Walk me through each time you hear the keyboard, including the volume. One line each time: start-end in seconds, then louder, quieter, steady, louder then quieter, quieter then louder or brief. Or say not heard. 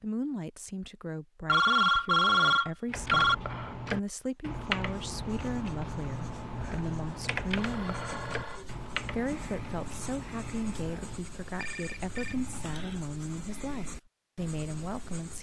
2.9-11.2 quieter.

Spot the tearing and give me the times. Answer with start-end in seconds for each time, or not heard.
not heard.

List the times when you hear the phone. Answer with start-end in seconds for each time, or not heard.
1.4-3.4, 7.5-8.7, 11.4-12.3.